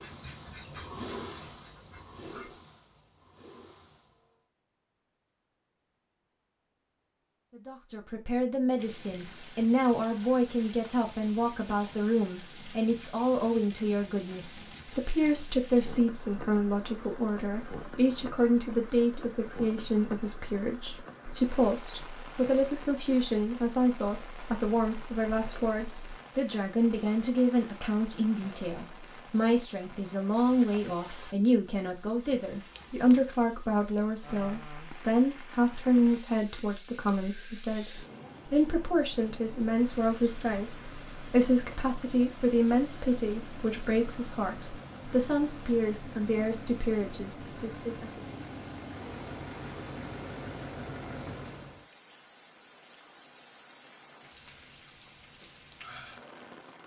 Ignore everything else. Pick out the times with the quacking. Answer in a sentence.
The quacking can be heard from 0.0 to 2.6 s.